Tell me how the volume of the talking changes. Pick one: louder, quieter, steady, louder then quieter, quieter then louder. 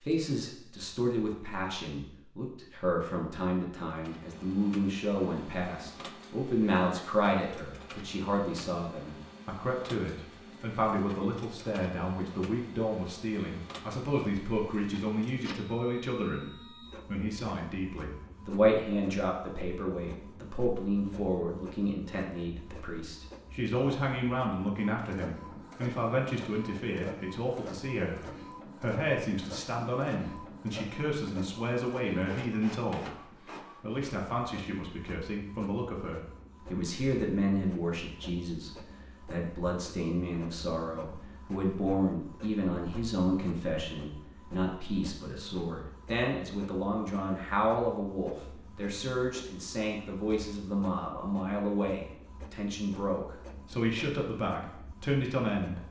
steady.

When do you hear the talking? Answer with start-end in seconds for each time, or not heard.
0.0-28.2, 28.8-33.1, 33.8-55.8.